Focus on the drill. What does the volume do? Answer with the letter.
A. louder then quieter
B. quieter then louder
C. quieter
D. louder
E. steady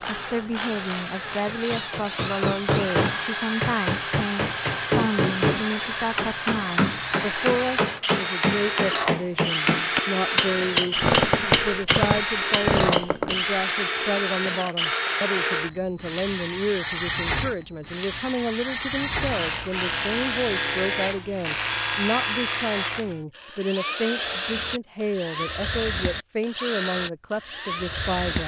E.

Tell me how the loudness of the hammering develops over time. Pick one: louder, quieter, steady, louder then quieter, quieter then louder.
steady.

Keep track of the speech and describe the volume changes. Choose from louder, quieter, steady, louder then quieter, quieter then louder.
steady.